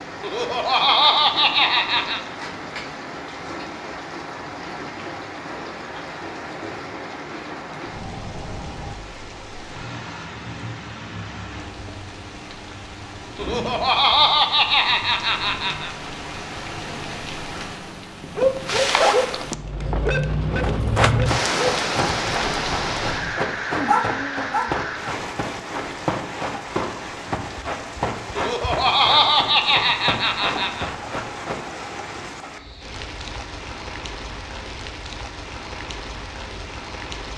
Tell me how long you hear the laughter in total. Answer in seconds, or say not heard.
7 s.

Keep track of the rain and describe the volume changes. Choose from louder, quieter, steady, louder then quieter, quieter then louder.
louder then quieter.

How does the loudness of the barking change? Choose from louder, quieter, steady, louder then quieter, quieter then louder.
quieter then louder.